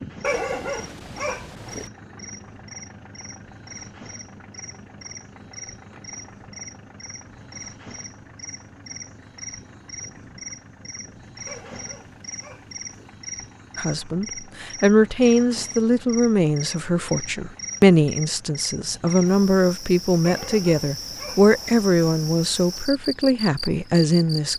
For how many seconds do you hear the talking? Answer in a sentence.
The talking can be heard for 11 seconds in total.